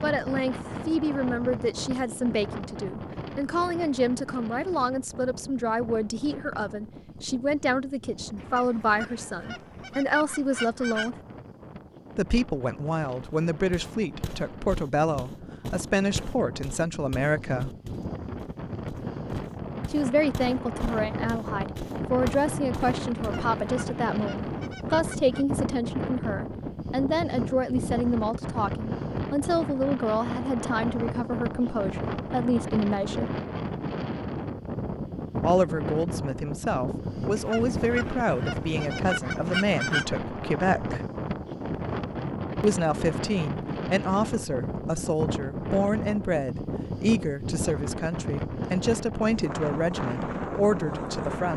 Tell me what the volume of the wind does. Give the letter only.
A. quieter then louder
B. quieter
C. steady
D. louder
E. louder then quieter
D.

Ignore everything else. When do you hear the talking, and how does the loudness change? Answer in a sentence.
The talking can be heard from 0.0 to 11.2 s, at a steady volume; from 12.2 to 17.8 s, at a steady volume; from 19.9 to 33.3 s, at a steady volume; from 35.4 to 41.0 s, at a steady volume; and from 42.6 to 51.5 s, at a steady volume.